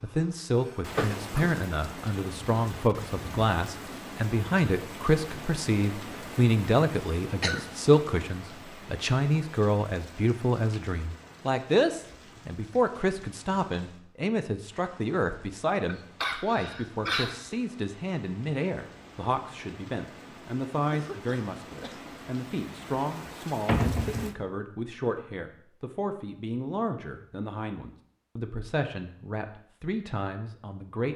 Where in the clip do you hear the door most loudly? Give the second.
24 s.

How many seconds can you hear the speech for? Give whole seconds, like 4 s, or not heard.
31 s.